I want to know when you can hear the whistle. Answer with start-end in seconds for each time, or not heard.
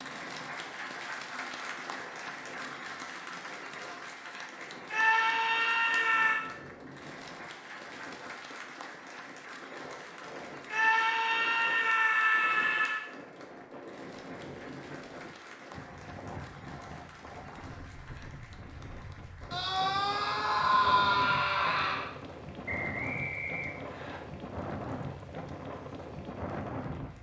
22.6-24.2.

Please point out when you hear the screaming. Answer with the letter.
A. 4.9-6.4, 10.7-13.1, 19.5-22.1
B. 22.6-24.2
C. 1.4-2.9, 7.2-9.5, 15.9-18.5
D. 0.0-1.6
A.